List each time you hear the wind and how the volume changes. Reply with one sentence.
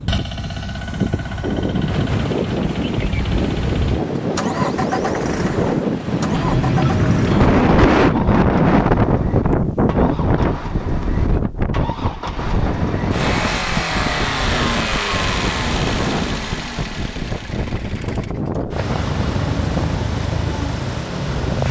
You can hear the wind from 0.0 to 21.6 s, getting louder then quieter.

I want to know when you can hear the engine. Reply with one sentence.
You can hear the engine from 0.0 to 21.6 s.